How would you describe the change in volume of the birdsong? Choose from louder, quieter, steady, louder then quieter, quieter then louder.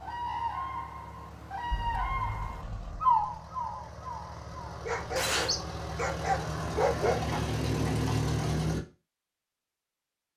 louder then quieter.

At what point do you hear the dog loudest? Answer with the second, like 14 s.
7 s.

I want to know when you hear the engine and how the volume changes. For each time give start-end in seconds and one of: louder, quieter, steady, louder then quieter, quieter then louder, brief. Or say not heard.
0.0-8.8 louder.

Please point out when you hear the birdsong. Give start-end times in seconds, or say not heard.
0.0-5.6.